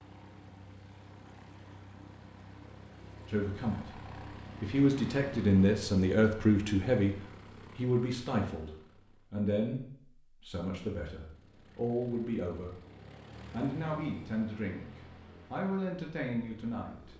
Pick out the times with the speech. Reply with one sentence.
The speech can be heard from 3.2 to 4.0 s, from 4.6 to 7.2 s, from 7.8 to 12.8 s, from 13.5 to 14.8 s and from 15.5 to 17.1 s.